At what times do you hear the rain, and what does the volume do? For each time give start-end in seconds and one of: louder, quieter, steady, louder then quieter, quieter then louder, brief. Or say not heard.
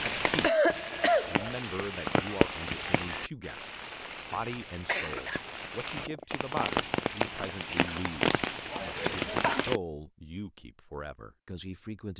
0.0-9.8 quieter then louder.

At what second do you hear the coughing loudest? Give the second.
1 s.